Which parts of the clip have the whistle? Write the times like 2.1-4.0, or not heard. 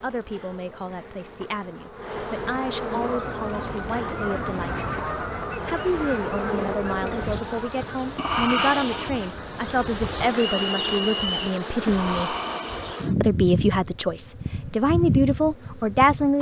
10.3-11.4.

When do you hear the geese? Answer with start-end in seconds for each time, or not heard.
3.0-9.9.